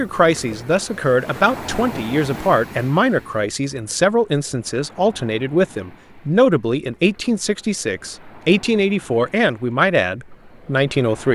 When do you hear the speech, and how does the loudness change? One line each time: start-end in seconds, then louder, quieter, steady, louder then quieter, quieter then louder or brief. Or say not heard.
0.0-11.3 steady.